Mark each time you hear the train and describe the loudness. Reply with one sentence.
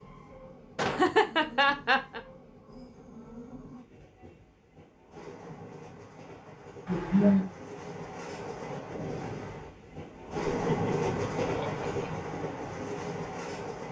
You can hear the train from 0.0 to 13.8 s, getting louder.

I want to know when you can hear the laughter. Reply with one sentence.
The laughter can be heard from 0.8 to 2.2 s, from 6.8 to 7.5 s and from 10.4 to 12.2 s.